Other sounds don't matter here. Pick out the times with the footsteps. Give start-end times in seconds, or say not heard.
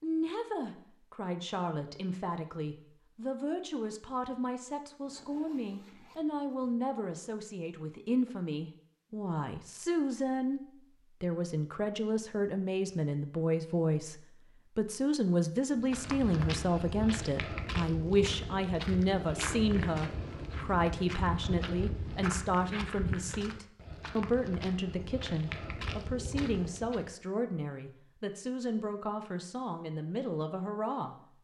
15.8-27.1.